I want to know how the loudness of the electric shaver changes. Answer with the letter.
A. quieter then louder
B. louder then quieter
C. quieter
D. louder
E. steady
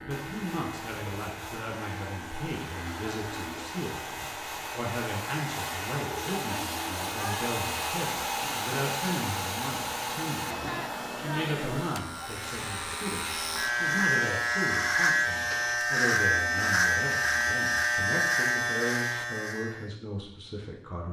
D.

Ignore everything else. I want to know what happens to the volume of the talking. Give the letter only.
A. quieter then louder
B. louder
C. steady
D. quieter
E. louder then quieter
C.